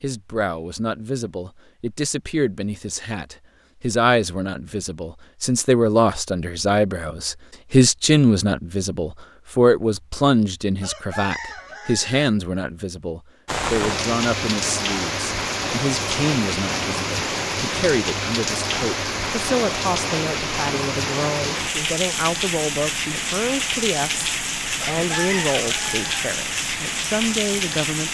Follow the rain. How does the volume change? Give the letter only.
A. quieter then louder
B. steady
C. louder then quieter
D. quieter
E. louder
B.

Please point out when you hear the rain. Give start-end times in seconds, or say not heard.
13.4-28.0.